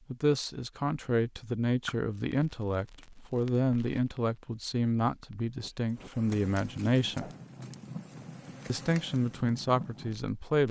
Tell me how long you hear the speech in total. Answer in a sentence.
You can hear the speech for 9 seconds altogether.